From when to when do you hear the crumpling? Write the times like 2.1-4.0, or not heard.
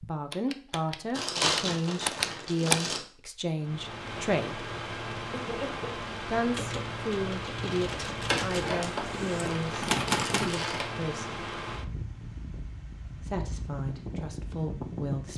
1.1-3.0, 8.2-10.8.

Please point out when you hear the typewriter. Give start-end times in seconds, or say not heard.
0.0-2.9, 6.5-10.6.